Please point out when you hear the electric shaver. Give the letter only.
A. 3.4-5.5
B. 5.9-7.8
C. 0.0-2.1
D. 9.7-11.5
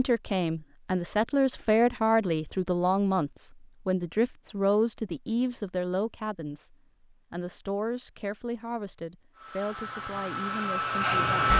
D.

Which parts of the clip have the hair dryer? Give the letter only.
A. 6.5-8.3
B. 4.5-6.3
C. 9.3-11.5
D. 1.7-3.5
C.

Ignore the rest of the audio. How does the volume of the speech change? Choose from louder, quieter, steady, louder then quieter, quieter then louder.
quieter.